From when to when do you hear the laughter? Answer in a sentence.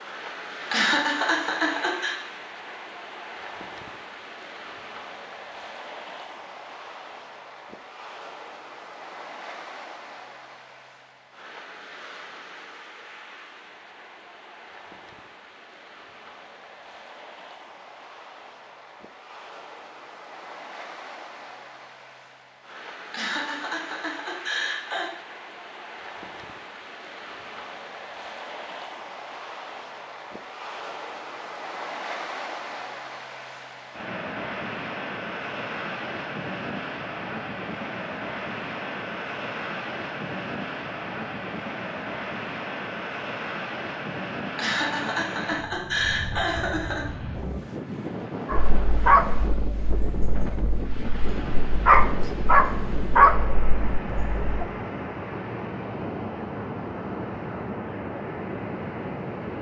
You can hear the laughter from 0.7 to 2.1 s, from 23.1 to 25.1 s and from 44.5 to 47.0 s.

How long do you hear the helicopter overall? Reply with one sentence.
You can't hear the helicopter here.